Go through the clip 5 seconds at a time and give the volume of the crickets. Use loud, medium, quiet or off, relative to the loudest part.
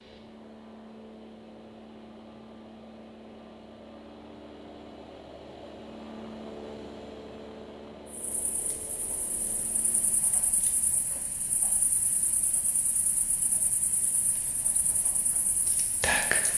off, quiet, quiet, loud.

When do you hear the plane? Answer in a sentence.
You can hear the plane from 0.0 to 10.2 s.